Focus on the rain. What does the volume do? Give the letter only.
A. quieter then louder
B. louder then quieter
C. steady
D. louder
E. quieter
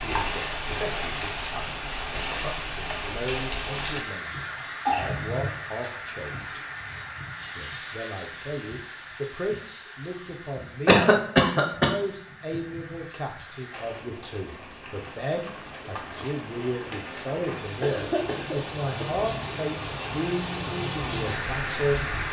A.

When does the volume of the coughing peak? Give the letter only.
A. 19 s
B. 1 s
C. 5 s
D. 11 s
D.